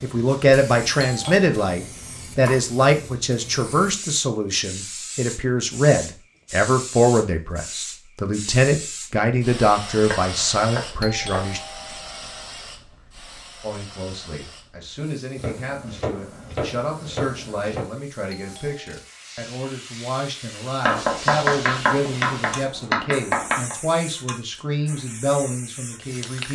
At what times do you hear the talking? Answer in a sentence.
You can hear the talking from 0.0 to 11.6 s and from 13.6 to 26.5 s.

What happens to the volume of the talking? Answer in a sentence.
The loudness of the talking goes down.